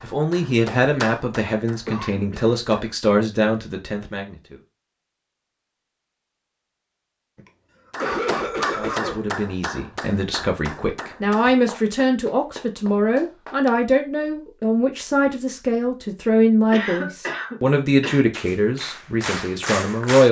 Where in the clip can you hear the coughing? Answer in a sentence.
The coughing can be heard from 1.9 to 2.5 s, from 7.3 to 9.2 s and from 16.7 to 18.2 s.